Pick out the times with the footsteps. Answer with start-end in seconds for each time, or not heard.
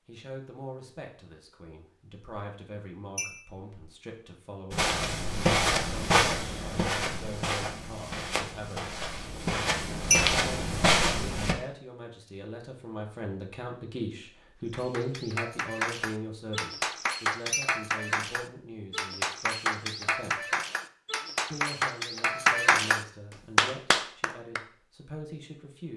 4.7-11.6.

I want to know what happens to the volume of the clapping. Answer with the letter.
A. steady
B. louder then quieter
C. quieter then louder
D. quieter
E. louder
E.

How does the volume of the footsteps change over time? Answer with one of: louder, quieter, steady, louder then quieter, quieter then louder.
quieter then louder.